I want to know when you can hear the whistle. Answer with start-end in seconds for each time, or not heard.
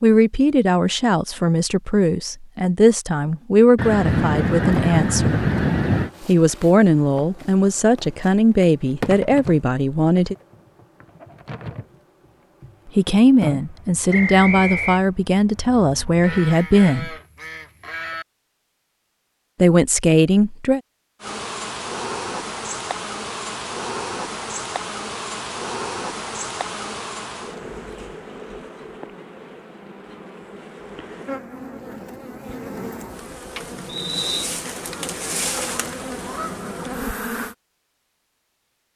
14.1-15.0, 33.9-34.5.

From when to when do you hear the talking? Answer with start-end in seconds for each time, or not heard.
0.0-5.5, 6.2-10.3, 12.9-17.1, 19.6-20.8.